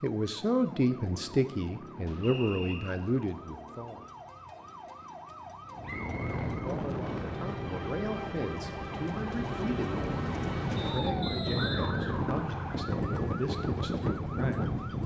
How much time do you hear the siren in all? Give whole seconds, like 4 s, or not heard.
15 s.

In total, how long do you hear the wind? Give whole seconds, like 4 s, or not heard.
9 s.